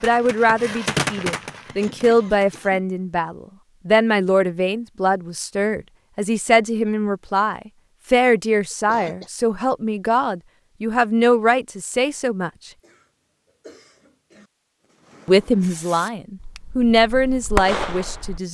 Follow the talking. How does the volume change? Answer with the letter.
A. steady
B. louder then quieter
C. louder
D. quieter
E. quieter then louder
A.